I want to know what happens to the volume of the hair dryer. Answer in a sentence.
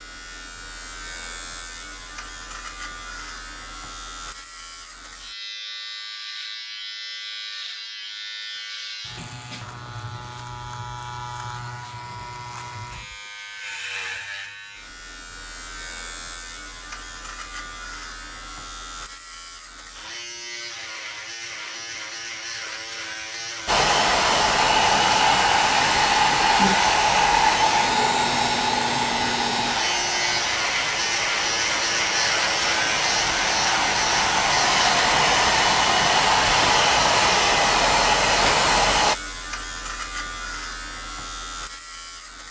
The loudness of the hair dryer goes down, then up.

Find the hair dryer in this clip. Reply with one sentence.
The hair dryer can be heard from 23.6 to 39.1 s.